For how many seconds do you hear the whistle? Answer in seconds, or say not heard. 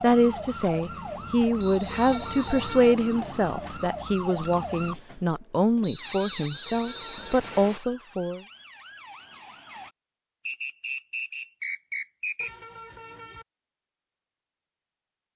5 s.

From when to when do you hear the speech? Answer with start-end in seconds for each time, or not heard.
0.0-8.4.